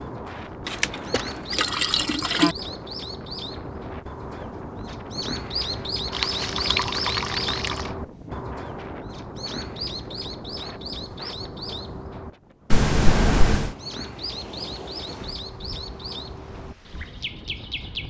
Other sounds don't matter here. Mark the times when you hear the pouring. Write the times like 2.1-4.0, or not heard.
0.7-2.5, 6.1-7.9, 12.7-13.8.